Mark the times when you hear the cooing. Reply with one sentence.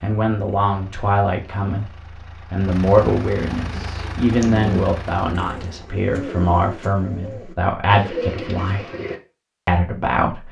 The cooing can be heard from 3.5 to 9.2 s.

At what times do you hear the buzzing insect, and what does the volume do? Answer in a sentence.
The buzzing insect can't be heard in this clip.